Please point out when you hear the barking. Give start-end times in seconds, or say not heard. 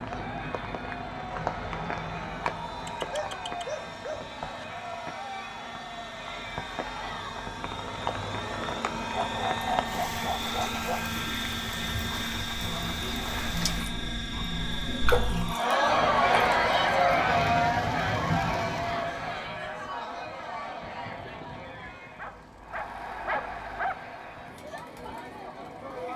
2.9-4.6, 9.1-11.1, 22.1-23.9.